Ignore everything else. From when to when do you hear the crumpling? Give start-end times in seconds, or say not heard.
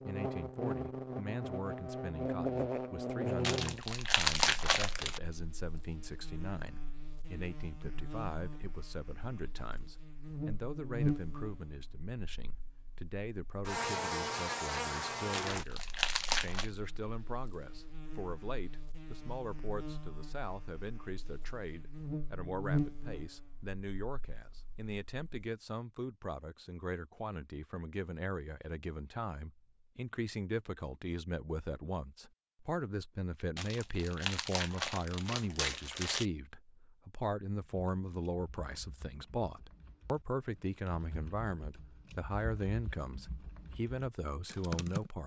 3.4-5.2, 15.3-16.7, 33.5-36.2.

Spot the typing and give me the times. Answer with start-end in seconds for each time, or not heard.
37.6-45.1.